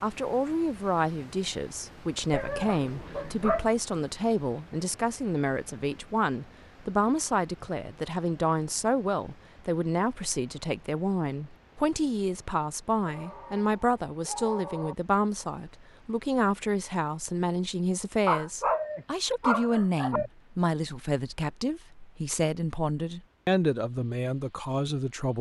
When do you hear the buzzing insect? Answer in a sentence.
You can't hear the buzzing insect here.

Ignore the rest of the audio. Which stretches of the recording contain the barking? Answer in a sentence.
The barking can be heard from 2.3 to 3.7 s, from 13.1 to 14.9 s and from 18.2 to 20.3 s.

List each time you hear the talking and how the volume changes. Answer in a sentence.
You can hear the talking from 0.0 to 25.3 s, at a steady volume.